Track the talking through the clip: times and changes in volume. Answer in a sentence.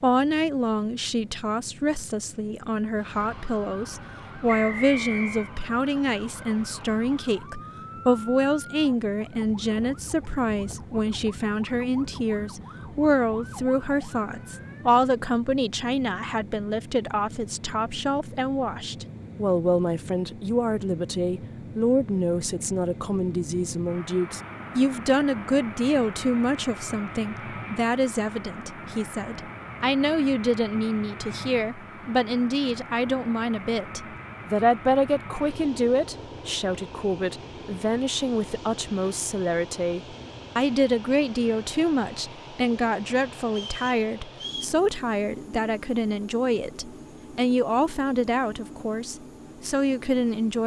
The talking can be heard from 0.0 to 50.6 s, at a steady volume.